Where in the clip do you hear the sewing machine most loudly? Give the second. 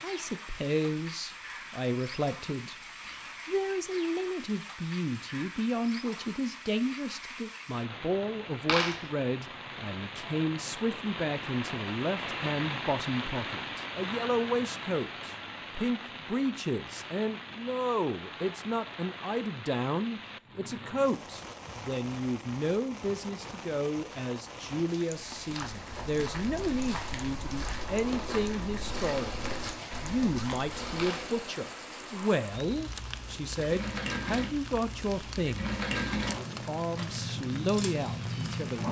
36 s.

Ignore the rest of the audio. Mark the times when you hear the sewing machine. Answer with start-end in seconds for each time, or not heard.
27.8-38.8.